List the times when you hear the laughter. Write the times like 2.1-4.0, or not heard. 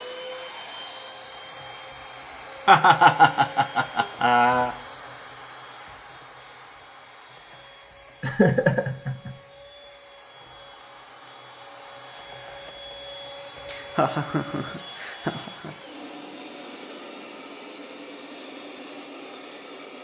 2.6-4.8, 8.2-9.3, 13.7-15.8.